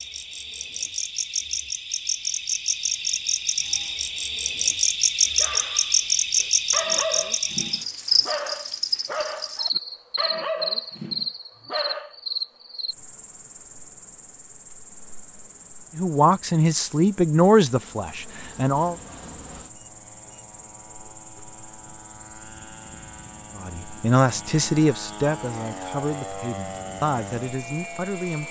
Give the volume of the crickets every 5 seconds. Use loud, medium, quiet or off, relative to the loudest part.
loud, loud, medium, quiet, quiet, quiet.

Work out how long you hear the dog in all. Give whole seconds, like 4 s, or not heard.
7 s.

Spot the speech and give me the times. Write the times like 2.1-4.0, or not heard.
15.9-18.9, 23.6-28.4.